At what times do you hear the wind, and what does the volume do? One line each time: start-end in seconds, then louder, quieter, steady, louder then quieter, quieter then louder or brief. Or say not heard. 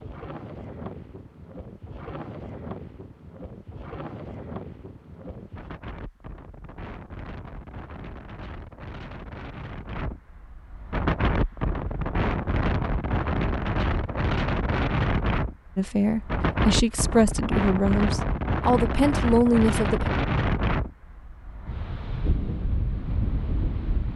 0.0-24.1 louder.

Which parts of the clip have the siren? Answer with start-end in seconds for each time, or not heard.
not heard.